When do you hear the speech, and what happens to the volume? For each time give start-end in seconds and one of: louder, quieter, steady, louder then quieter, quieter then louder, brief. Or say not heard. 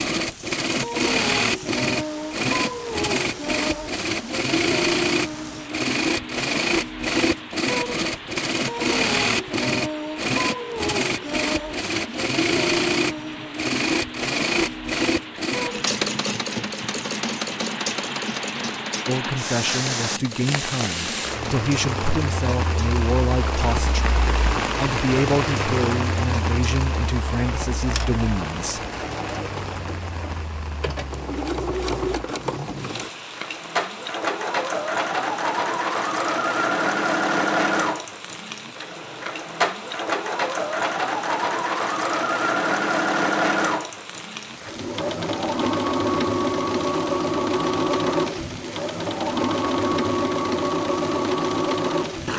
19.1-28.8 steady.